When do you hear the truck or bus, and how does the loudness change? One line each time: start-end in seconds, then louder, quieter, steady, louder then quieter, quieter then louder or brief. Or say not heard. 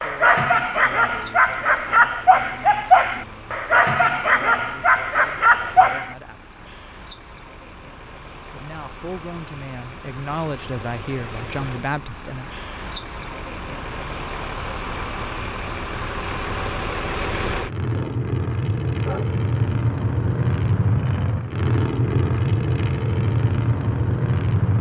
0.0-24.7 louder.